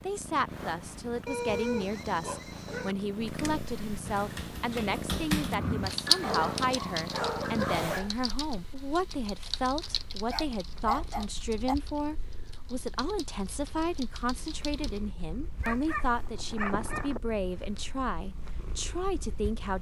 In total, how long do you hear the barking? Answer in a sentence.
The barking can be heard for 7 seconds in total.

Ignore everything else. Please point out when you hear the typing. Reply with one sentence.
You can hear the typing from 3.2 to 15.0 s.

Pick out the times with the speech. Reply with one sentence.
You can hear the speech from 0.0 to 19.7 s.